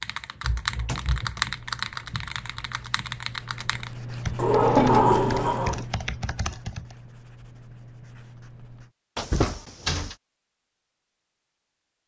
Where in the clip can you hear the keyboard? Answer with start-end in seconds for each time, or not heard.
0.0-7.0.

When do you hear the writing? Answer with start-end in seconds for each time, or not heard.
1.4-8.9.